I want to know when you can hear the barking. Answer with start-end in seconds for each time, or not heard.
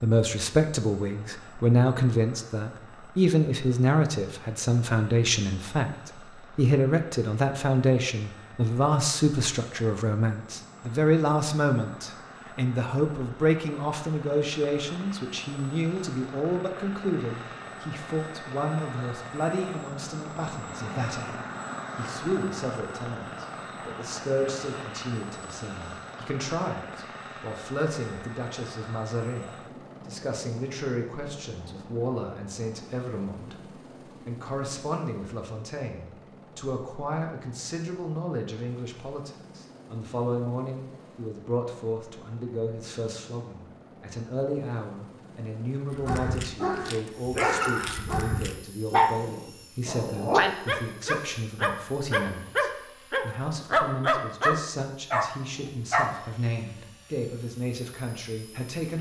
45.9-56.2.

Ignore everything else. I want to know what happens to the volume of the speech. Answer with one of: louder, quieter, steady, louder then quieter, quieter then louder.
quieter.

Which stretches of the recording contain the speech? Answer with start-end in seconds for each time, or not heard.
0.0-58.9.